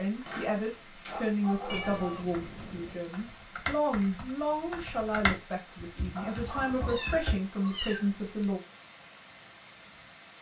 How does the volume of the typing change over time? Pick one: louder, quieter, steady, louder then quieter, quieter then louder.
louder then quieter.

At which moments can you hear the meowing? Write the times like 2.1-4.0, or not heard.
1.6-3.0, 6.4-8.5.